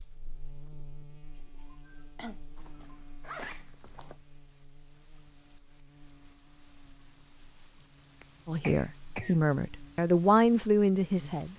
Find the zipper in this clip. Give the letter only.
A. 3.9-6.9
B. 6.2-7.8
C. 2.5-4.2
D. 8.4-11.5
C.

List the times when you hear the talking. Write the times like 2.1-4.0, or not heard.
8.4-11.5.